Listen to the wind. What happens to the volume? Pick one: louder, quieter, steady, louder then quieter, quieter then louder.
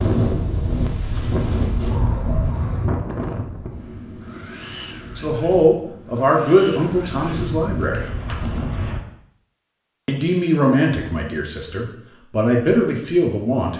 quieter then louder.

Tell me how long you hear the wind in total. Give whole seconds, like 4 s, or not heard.
9 s.